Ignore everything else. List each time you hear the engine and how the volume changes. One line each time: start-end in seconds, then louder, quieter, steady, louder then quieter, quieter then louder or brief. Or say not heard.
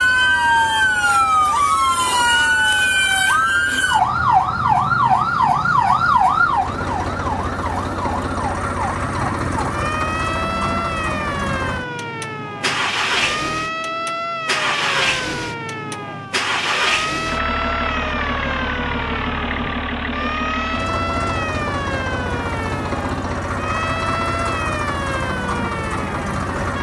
0.0-26.7 louder.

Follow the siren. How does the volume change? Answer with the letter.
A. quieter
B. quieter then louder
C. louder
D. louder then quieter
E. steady
A.